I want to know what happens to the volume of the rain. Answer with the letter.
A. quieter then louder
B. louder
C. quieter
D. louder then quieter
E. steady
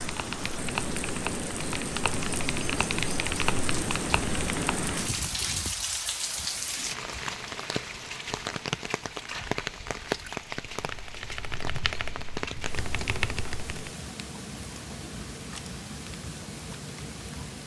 C.